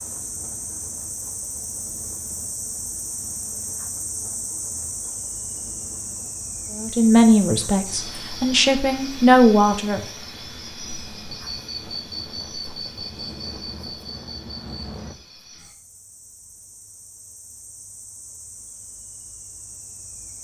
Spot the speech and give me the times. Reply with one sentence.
The speech can be heard from 6.8 to 10.1 s.